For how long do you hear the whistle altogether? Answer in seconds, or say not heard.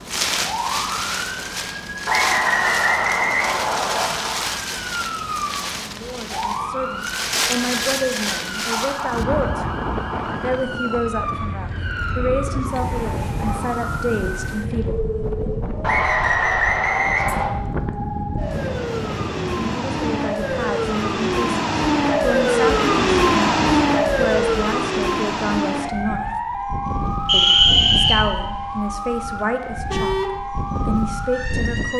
5 s.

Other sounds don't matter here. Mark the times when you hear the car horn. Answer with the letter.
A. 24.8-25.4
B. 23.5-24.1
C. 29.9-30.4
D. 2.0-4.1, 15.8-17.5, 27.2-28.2
C.